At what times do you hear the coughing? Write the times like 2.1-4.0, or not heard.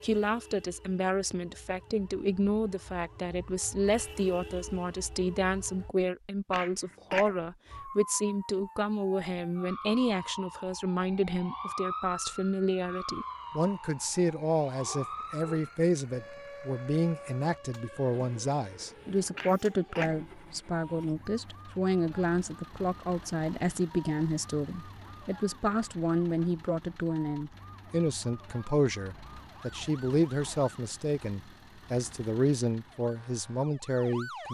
6.5-7.3, 19.4-20.1.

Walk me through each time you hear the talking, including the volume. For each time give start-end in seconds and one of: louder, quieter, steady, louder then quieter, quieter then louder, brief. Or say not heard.
0.0-34.4 steady.